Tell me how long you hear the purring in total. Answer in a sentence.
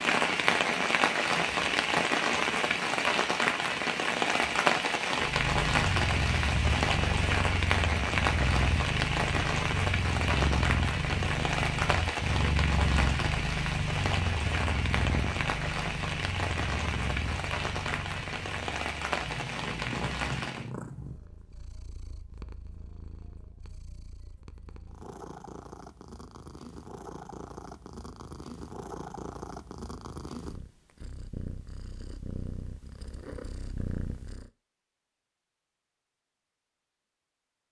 The purring can be heard for 29 seconds in total.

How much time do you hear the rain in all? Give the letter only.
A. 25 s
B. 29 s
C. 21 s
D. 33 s
C.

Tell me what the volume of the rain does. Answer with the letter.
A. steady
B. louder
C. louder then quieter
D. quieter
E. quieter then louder
D.